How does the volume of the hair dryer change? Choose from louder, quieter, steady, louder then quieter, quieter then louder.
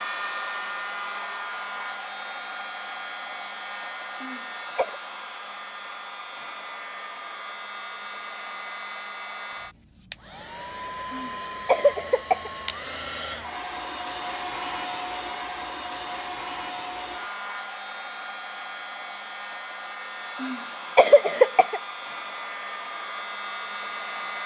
steady.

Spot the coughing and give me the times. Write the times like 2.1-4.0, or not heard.
4.2-5.0, 11.1-12.5, 20.4-21.8.